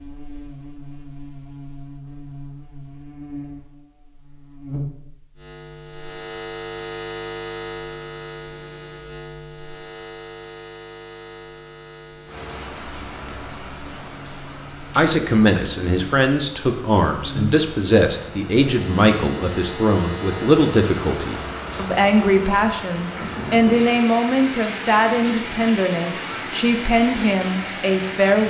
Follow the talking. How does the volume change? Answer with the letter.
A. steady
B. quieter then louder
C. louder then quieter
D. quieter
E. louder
A.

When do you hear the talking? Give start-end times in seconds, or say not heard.
14.9-28.4.